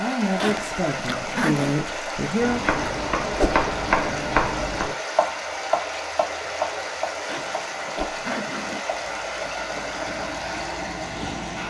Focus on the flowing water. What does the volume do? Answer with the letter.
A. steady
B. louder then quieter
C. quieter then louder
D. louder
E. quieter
A.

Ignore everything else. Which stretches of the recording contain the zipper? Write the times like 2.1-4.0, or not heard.
0.3-1.8, 7.2-8.8.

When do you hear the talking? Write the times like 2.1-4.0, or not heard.
0.0-2.6.